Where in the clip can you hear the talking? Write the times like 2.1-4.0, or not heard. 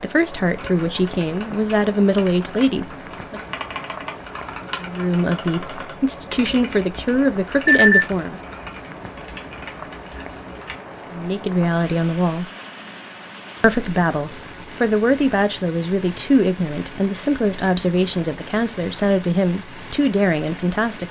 0.0-3.4, 4.8-8.4, 11.1-12.4, 13.6-21.0.